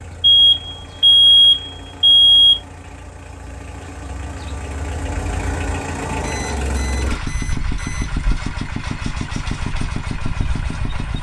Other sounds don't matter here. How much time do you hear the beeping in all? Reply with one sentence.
You can hear the beeping for 4 seconds altogether.